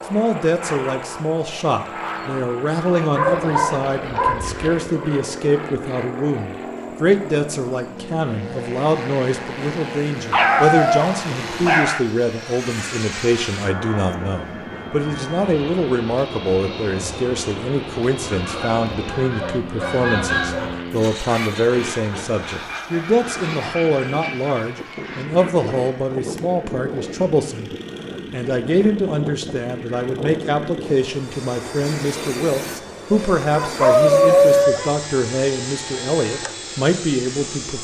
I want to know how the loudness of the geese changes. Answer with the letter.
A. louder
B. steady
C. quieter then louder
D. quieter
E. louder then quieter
E.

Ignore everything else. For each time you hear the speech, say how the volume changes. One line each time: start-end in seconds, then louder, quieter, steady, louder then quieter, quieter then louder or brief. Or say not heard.
0.1-27.7 steady
28.3-37.7 steady.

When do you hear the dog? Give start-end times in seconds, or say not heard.
3.1-4.8, 10.3-12.0, 19.4-20.9, 33.1-34.9.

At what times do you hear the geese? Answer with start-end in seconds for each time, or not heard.
18.2-23.8.